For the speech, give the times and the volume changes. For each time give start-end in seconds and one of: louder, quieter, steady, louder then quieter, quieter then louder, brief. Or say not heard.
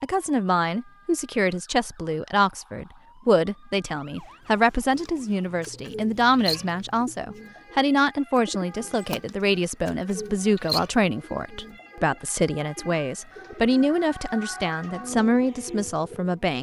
0.0-16.5 steady.